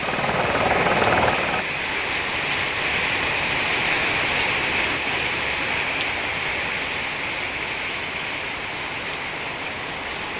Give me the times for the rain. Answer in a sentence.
The rain can be heard from 0.0 to 10.3 s.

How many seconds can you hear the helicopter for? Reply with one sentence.
You can hear the helicopter for 2 seconds altogether.